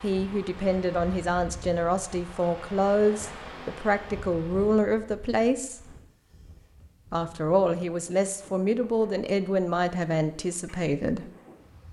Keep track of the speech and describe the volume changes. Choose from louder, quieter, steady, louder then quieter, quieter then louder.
steady.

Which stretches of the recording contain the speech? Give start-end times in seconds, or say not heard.
0.0-5.9, 7.1-11.3.